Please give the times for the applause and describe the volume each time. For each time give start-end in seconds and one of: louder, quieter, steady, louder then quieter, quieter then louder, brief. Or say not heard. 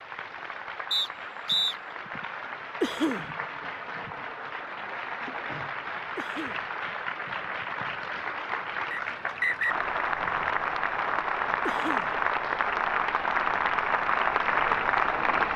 0.0-15.5 louder.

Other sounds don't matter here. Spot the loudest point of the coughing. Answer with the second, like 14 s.
3 s.